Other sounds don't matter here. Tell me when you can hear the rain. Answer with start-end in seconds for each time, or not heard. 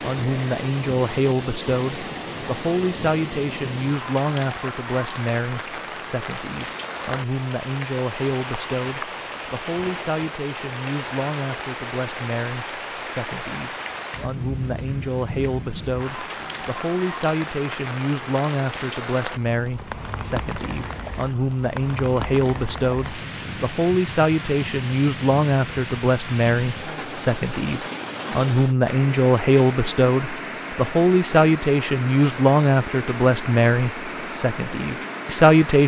0.0-35.8.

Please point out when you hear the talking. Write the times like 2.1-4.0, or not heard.
0.0-35.8.